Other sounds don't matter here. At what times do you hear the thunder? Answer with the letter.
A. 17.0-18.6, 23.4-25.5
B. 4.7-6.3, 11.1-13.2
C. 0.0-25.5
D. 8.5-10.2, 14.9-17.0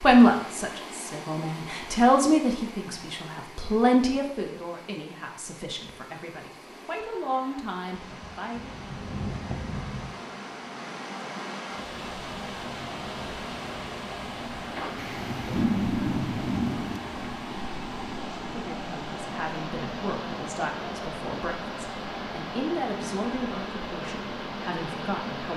D.